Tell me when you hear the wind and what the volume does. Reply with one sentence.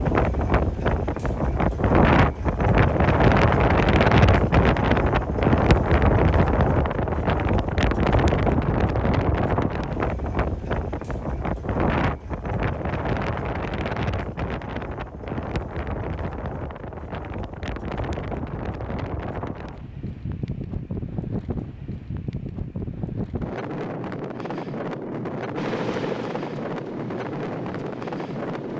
You can hear the wind from 0.0 to 28.7 s, getting quieter.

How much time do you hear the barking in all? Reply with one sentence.
You can't hear the barking here.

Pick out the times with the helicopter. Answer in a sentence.
The helicopter can be heard from 25.6 to 28.7 s.